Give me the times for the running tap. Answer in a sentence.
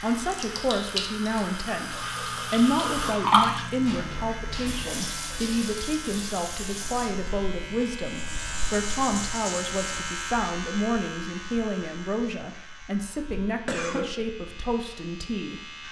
The running tap can be heard from 0.0 to 10.5 s.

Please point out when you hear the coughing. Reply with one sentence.
You can hear the coughing from 13.7 to 14.1 s.